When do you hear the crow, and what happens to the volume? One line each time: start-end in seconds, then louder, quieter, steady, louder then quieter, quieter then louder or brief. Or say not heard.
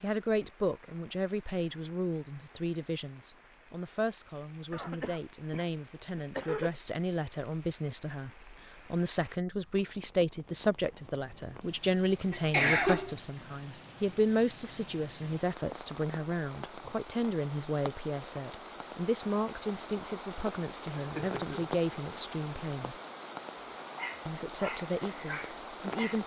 not heard.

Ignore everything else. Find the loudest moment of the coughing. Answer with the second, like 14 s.
13 s.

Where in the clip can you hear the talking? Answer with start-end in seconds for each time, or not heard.
0.0-22.9, 24.2-26.2.